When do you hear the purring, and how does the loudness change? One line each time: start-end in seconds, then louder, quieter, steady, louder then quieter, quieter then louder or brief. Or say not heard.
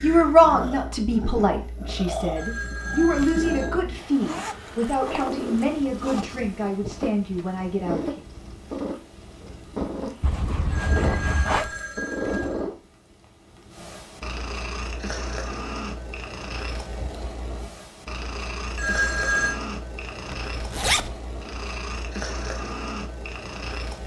0.0-24.0 steady.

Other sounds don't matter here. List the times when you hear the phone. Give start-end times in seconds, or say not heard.
2.4-3.7, 10.7-12.6, 18.8-19.6.